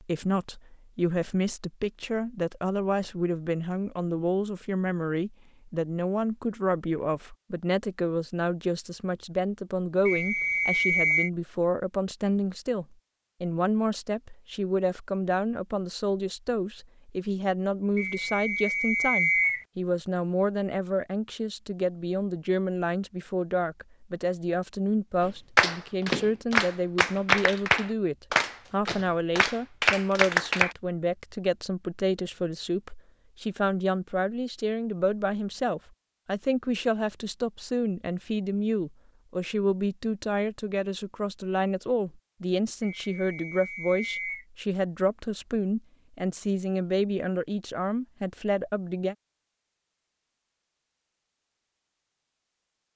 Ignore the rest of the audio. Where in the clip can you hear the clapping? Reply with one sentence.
The clapping can be heard from 25.2 to 30.8 s.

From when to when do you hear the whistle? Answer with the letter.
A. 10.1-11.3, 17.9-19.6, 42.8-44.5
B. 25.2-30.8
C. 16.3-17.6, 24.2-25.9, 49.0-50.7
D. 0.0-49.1
A.